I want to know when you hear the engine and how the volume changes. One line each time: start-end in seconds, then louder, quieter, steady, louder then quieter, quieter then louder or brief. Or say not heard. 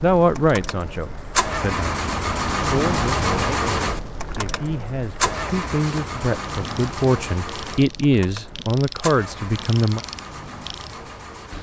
0.0-11.5 quieter.